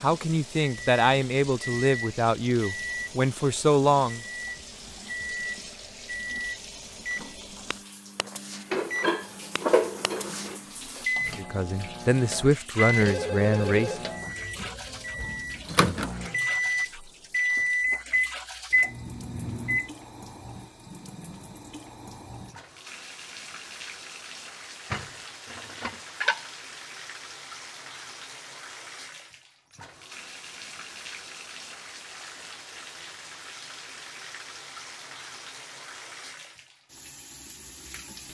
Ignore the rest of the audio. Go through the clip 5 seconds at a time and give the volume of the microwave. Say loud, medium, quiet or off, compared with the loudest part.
medium, medium, medium, loud, off, off, off, off.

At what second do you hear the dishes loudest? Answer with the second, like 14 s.
10 s.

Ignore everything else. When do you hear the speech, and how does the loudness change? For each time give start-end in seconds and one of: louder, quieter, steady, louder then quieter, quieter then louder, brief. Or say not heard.
0.0-4.2 steady
11.3-13.9 brief.